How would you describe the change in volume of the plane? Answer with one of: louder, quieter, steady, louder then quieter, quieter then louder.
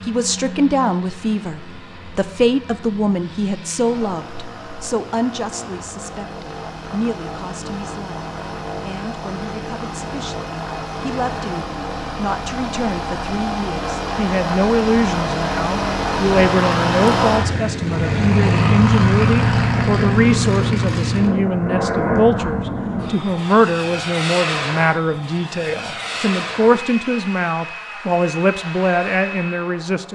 louder then quieter.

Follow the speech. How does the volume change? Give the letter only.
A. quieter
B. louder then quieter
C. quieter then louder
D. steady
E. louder
C.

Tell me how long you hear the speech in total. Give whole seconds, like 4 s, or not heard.
30 s.